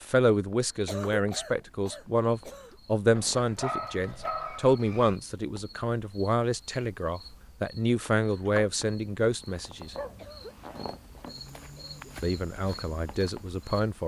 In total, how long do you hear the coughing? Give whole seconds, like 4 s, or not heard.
4 s.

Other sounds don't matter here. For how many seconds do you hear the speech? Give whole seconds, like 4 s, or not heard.
12 s.